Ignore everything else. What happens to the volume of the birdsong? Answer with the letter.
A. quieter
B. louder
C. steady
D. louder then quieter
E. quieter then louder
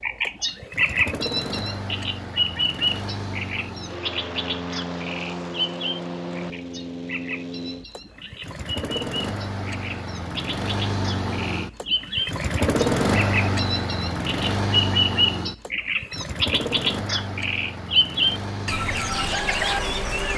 E.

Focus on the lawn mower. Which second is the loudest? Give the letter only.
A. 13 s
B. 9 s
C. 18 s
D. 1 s
A.